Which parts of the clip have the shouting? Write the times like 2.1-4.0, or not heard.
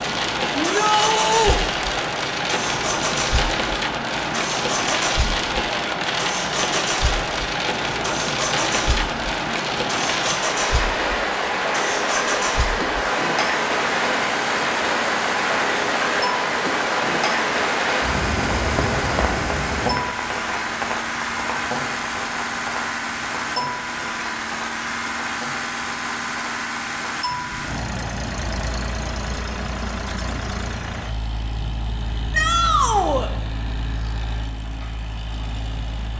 0.6-1.6, 32.3-33.3.